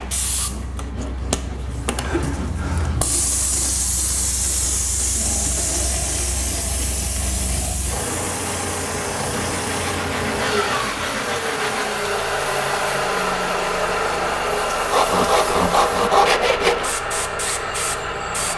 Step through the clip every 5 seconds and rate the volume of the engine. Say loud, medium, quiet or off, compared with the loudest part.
quiet, medium, loud, loud.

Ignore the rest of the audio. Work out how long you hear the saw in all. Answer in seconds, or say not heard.
10 s.